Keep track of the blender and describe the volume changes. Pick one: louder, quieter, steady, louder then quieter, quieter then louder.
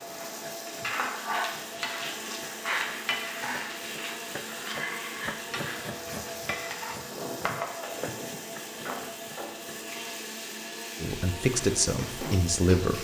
steady.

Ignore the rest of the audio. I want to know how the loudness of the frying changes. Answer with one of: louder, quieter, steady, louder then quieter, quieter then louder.
quieter.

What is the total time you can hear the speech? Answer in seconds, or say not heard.
2 s.